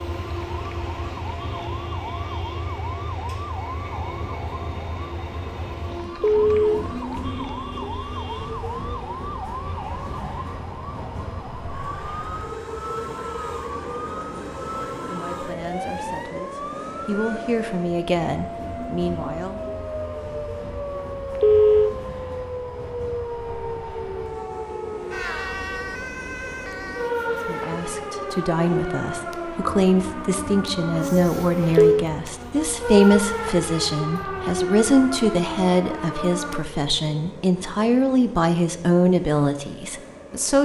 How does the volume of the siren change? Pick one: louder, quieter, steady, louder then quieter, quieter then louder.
louder.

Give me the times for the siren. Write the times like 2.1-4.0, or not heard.
0.0-36.6.